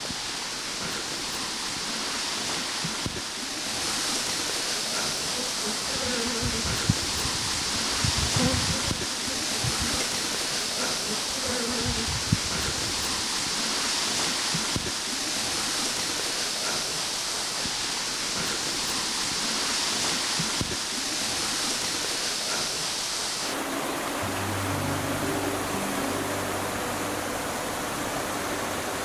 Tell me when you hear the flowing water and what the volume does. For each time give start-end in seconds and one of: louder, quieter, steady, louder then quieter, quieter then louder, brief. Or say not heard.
0.0-29.0 steady.